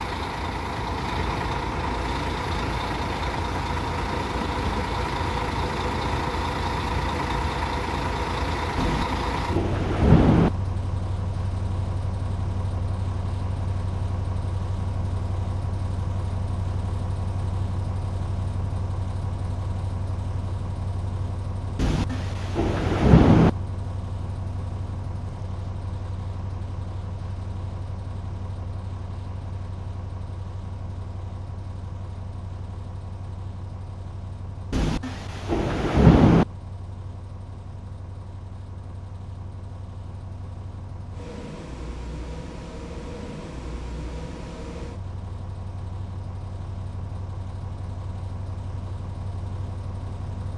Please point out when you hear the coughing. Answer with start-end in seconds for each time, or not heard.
not heard.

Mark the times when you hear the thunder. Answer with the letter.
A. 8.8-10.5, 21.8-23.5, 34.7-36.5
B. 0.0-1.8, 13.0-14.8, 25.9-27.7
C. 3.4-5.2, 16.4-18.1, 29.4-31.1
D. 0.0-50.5
A.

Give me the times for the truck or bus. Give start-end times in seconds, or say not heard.
0.0-50.5.